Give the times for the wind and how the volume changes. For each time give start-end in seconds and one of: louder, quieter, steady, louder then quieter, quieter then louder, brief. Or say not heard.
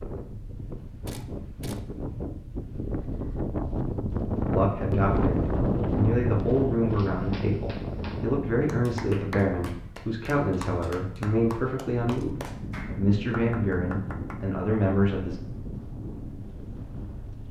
0.0-17.4 louder then quieter.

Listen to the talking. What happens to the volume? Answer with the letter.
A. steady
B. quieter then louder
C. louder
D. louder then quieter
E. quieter
A.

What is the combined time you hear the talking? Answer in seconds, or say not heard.
11 s.